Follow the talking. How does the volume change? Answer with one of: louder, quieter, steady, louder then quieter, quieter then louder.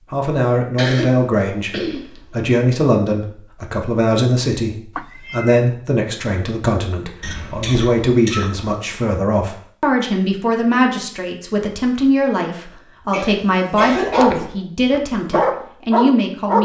steady.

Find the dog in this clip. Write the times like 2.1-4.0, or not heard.
13.9-16.6.